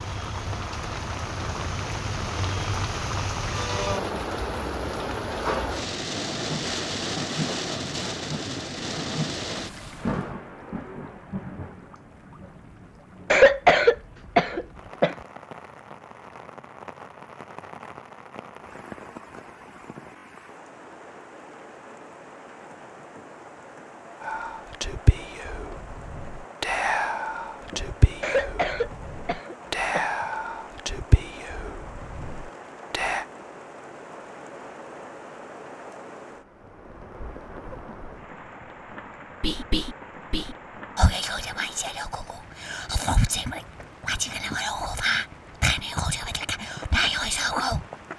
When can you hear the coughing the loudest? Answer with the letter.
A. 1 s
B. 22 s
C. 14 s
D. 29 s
C.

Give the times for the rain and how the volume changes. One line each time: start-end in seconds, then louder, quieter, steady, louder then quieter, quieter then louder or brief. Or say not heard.
0.0-48.1 quieter.